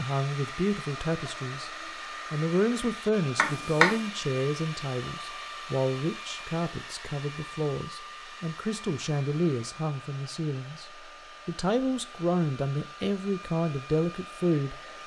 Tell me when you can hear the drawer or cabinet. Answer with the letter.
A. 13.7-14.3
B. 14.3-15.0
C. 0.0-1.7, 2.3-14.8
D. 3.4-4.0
D.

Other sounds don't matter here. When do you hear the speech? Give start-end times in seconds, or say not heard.
0.0-1.7, 2.3-14.8.